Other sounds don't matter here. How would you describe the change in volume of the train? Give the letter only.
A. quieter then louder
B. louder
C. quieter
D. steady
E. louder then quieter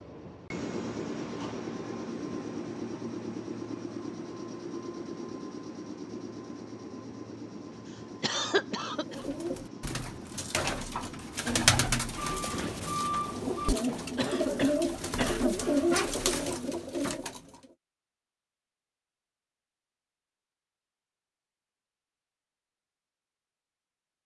C.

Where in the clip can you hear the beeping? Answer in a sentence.
The beeping can be heard from 12.2 to 13.8 s.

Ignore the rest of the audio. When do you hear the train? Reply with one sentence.
The train can be heard from 0.0 to 13.8 s.